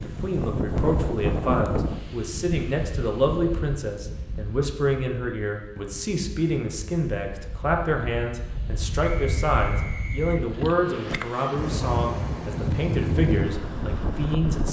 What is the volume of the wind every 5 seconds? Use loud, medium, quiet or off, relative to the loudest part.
loud, medium, loud.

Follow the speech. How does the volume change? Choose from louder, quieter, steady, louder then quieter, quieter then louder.
steady.